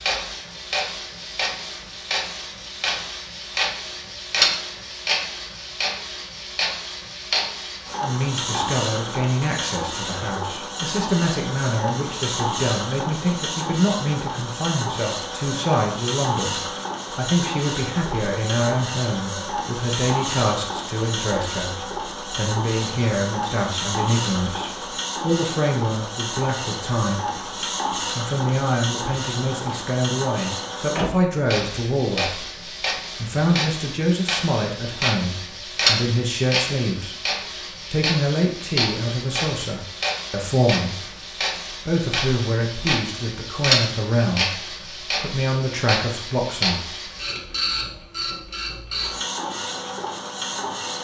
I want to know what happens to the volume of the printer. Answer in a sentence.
The loudness of the printer stays about the same.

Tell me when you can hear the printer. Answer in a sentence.
You can hear the printer from 0.0 to 51.0 s.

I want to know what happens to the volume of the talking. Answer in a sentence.
The volume of the talking stays about the same.